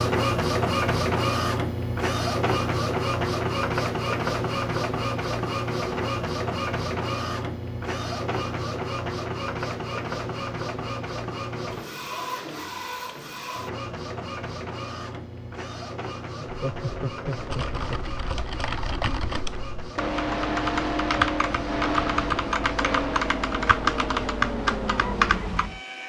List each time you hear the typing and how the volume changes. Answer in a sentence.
The typing can be heard from 17.4 to 25.8 s, getting louder.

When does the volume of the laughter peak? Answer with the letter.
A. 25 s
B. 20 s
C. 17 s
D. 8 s
C.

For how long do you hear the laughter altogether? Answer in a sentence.
You can hear the laughter for 2 seconds altogether.